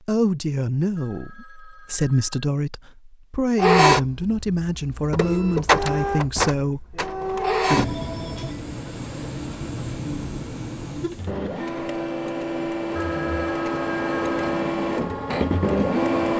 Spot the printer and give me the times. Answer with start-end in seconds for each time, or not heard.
3.5-16.3.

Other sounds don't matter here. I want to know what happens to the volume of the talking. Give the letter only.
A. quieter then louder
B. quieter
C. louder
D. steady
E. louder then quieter
D.